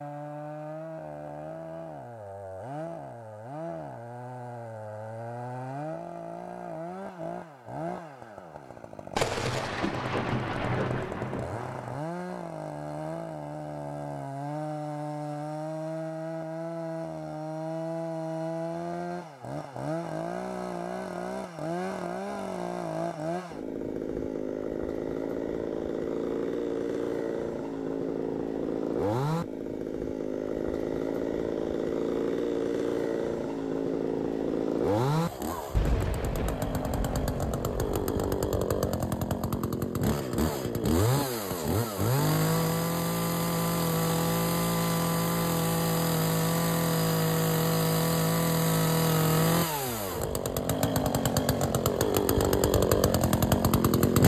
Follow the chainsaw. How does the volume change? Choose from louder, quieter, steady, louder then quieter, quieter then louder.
louder.